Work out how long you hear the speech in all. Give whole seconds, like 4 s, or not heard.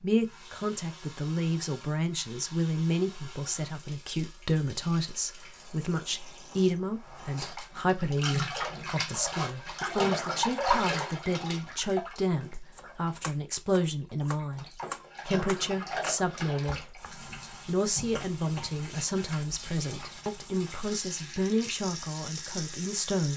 23 s.